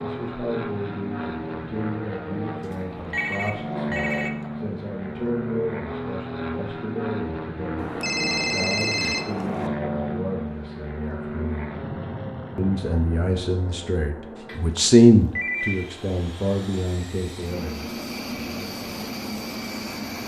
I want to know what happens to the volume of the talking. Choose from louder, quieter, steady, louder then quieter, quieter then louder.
louder.